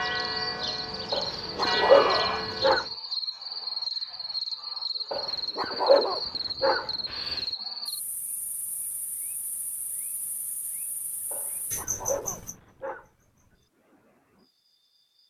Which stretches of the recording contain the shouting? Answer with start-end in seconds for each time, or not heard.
1.8-2.5.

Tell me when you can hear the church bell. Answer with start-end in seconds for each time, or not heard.
0.0-3.0.